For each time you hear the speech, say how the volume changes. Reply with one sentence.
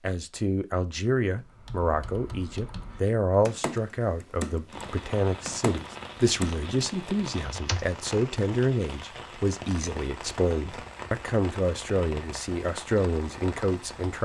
The speech can be heard from 0.0 to 14.2 s, at a steady volume.